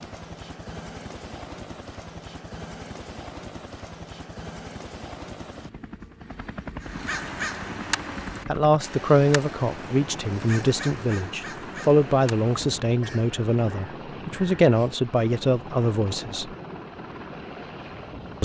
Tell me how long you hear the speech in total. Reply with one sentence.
The speech can be heard for 8 seconds in total.